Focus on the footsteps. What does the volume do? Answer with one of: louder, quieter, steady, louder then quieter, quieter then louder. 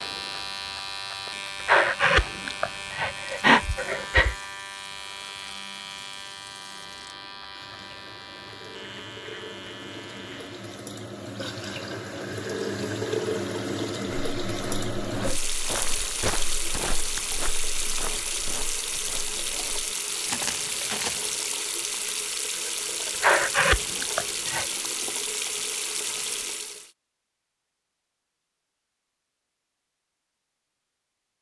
quieter then louder.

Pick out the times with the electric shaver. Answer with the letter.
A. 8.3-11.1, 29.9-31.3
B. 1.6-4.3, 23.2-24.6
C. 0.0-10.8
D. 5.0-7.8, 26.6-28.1
C.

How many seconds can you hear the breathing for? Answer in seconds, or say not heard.
4 s.